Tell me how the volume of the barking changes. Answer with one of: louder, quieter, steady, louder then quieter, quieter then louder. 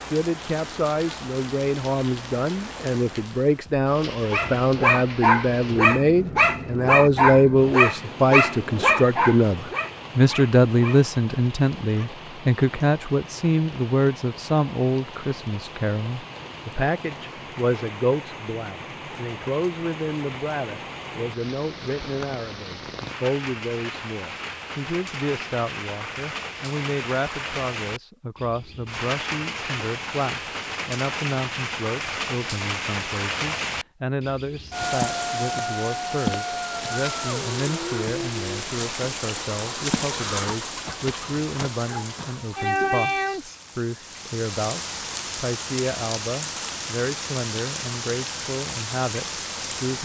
quieter.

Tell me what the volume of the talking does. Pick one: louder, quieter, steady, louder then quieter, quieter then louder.
quieter.